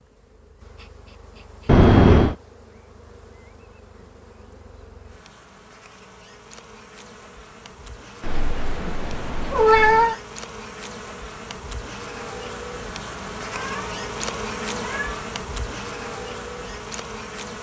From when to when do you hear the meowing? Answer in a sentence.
The meowing can be heard from 1.6 to 2.4 s, from 8.2 to 10.2 s and from 13.5 to 15.2 s.